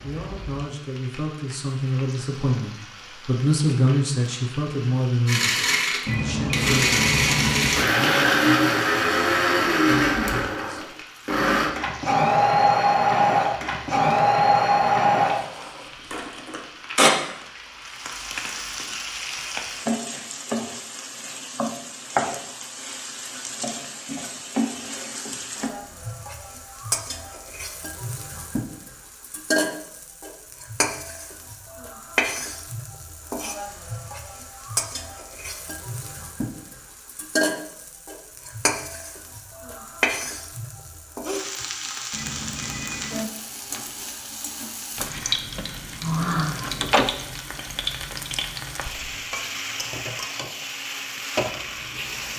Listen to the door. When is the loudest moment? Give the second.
47 s.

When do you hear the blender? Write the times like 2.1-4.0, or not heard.
5.2-17.1.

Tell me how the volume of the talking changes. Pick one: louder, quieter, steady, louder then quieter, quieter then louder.
louder then quieter.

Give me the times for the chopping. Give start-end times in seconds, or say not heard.
not heard.